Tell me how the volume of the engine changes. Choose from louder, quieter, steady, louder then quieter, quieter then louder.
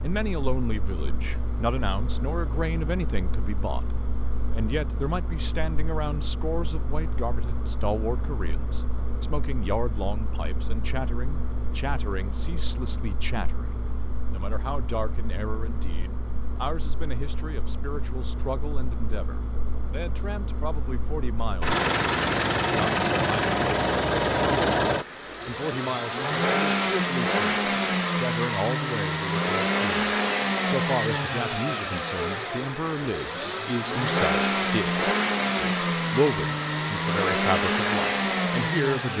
louder.